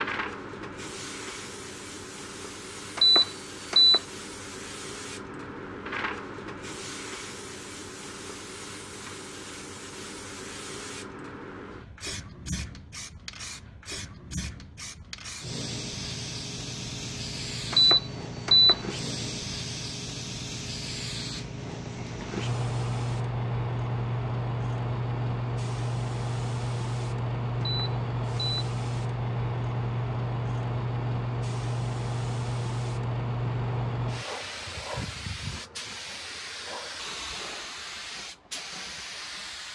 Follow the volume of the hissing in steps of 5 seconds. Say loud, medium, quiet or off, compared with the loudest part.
medium, medium, medium, medium, loud, loud, loud, medium.